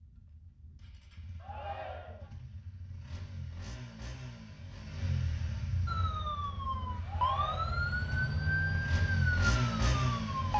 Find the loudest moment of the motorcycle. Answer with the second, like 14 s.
10 s.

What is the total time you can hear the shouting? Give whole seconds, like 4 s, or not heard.
2 s.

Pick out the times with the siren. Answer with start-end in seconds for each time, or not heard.
5.8-10.5.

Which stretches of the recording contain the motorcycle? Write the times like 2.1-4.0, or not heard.
0.0-10.5.